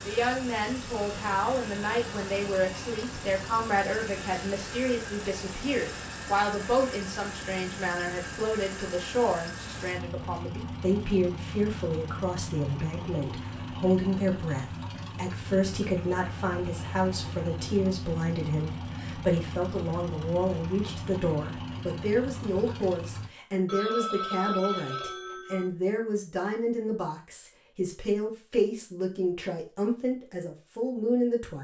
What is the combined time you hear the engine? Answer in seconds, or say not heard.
23 s.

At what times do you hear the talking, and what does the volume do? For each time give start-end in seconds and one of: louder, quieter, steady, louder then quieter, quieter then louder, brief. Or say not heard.
0.1-31.5 steady.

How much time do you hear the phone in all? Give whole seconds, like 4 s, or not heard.
2 s.